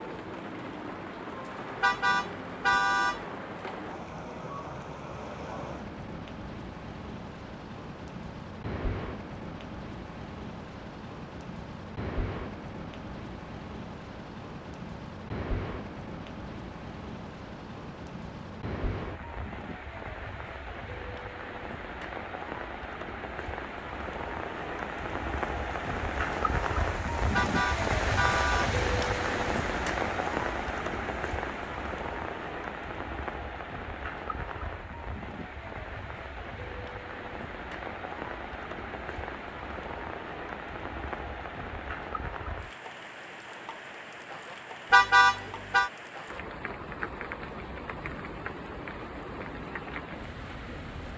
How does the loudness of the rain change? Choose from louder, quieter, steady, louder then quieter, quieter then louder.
louder then quieter.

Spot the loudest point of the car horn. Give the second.
45 s.